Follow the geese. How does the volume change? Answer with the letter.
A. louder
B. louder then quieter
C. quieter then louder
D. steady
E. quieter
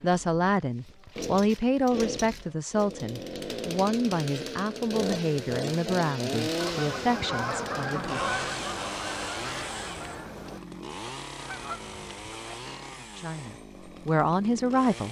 E.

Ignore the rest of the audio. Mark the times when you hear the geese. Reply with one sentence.
The geese can be heard from 6.6 to 12.7 s.